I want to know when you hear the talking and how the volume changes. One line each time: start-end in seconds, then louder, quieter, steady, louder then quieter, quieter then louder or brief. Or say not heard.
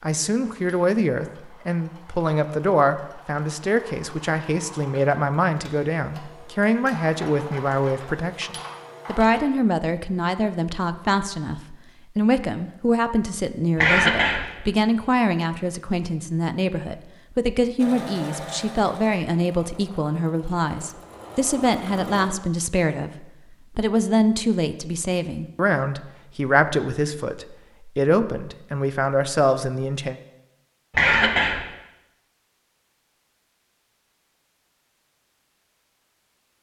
0.0-30.2 steady.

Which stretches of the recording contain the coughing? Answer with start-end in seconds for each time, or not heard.
13.8-14.4, 30.9-31.6.